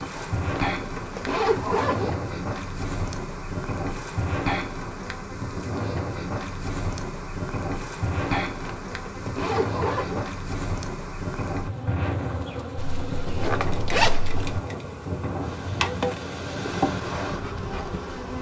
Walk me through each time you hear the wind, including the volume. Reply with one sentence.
The wind can be heard from 0.0 to 18.1 s, at a steady volume.